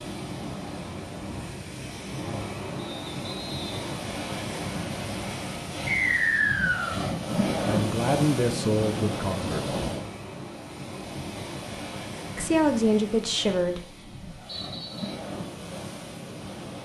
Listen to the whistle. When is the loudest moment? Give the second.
6 s.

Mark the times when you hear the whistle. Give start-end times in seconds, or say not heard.
2.8-3.8, 5.8-7.0, 14.4-15.2.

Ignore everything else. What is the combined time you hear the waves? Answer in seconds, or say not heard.
17 s.